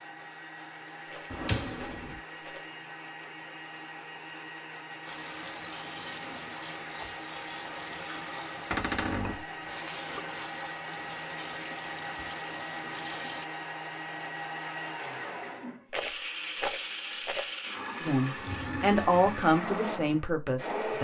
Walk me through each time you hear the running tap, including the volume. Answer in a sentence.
You can hear the running tap from 5.0 to 13.4 s, at a steady volume.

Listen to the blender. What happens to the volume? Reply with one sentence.
The volume of the blender goes up.